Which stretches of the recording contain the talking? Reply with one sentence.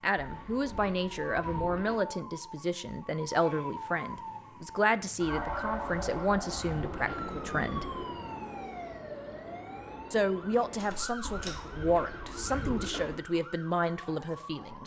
The talking can be heard from 0.0 to 7.8 s and from 10.1 to 14.8 s.